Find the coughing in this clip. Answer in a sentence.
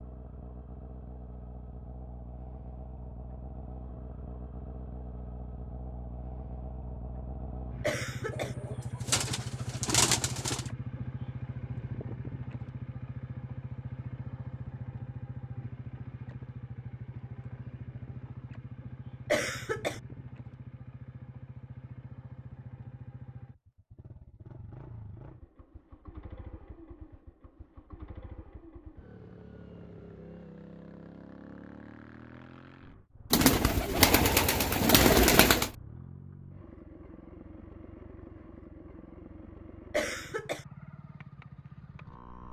You can hear the coughing from 7.8 to 8.6 s, from 19.3 to 20.0 s and from 39.9 to 40.6 s.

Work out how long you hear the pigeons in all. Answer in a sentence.
You can hear the pigeons for 5 seconds altogether.